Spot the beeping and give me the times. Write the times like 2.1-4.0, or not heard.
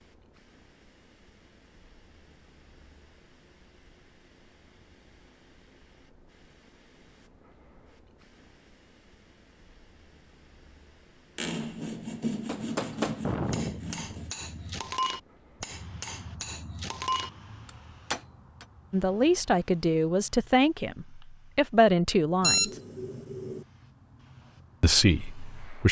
22.4-23.6.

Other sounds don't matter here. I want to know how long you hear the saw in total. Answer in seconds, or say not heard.
3 s.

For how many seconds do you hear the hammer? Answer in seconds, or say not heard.
6 s.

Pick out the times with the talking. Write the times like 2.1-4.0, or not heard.
18.9-22.7, 24.8-25.8.